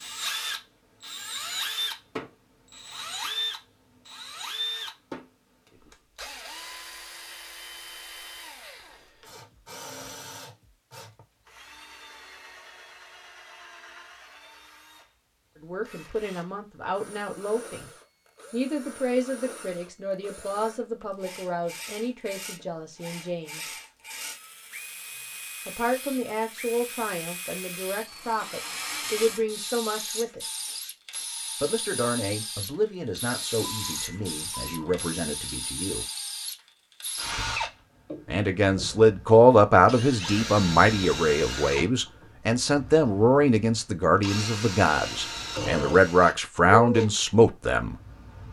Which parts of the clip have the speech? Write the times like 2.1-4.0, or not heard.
15.6-17.9, 18.5-23.7, 25.6-30.4, 31.6-36.0, 38.2-48.0.